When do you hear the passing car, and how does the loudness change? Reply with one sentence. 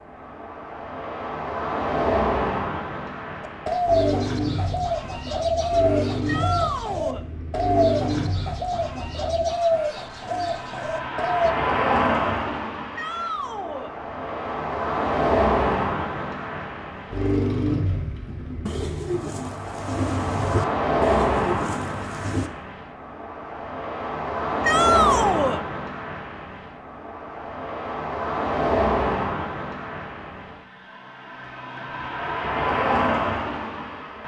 The passing car can be heard from 0.0 to 34.2 s, at a steady volume.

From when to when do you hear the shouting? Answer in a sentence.
The shouting can be heard from 6.2 to 7.2 s, from 12.9 to 13.9 s and from 24.6 to 25.6 s.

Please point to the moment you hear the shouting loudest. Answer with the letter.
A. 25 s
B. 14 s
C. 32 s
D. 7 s
A.